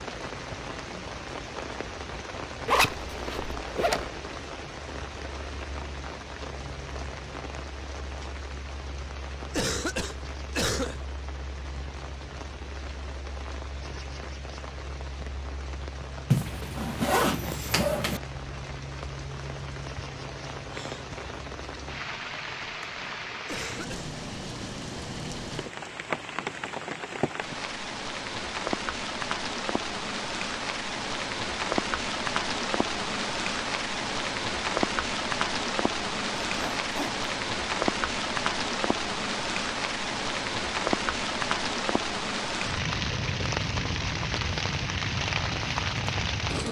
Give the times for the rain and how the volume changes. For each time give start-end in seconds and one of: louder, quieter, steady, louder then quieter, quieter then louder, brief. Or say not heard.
0.0-46.6 louder.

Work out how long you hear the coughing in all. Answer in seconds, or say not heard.
2 s.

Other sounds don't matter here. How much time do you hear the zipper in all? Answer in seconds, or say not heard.
4 s.